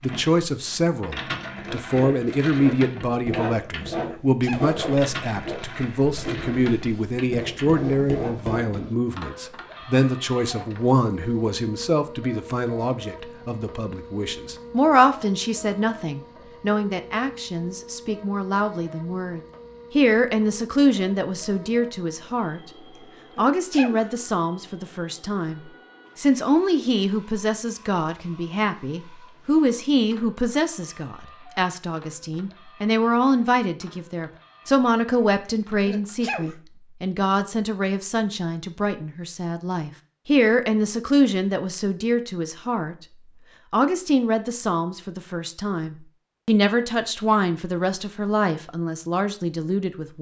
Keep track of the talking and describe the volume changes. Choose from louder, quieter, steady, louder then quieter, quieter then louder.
steady.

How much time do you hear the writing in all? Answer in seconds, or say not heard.
7 s.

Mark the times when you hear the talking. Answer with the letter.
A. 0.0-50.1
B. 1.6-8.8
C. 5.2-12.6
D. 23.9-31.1
A.